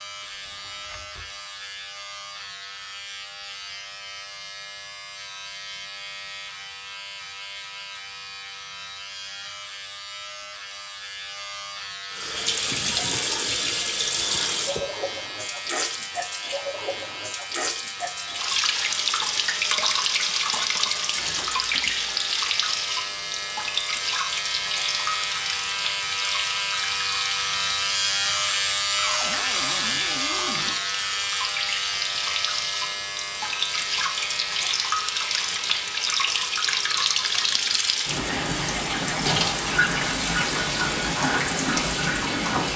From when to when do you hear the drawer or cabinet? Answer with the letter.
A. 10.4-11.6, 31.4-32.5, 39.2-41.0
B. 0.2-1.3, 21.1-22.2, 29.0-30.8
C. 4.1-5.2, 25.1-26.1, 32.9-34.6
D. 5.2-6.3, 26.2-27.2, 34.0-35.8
B.